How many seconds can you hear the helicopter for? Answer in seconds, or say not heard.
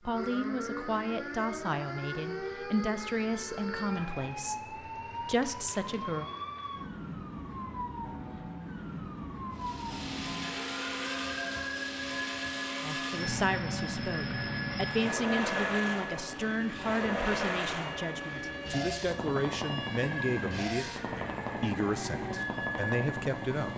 14 s.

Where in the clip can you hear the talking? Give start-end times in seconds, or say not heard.
0.0-6.3, 12.8-23.7.